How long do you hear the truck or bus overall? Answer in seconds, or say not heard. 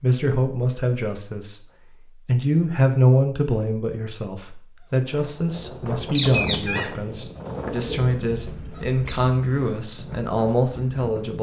not heard.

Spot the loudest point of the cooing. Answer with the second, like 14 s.
6 s.